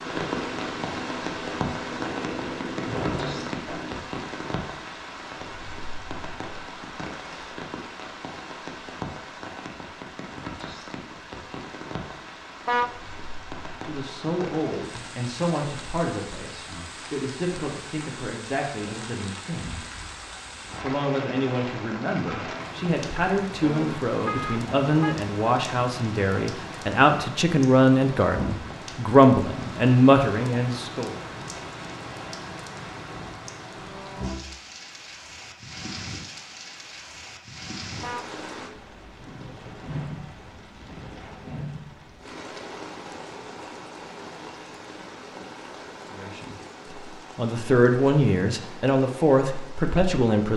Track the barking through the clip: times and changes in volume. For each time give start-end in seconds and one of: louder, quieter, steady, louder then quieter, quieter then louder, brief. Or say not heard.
not heard.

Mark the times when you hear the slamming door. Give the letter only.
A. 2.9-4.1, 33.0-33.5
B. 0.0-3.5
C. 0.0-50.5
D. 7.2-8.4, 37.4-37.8
A.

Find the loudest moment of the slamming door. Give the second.
3 s.